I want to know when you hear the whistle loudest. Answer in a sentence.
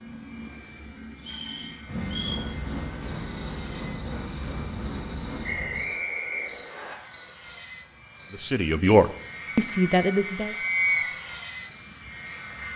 The volume of the whistle peaks at 11 seconds.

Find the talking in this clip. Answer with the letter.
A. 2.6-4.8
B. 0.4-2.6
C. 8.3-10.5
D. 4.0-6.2
C.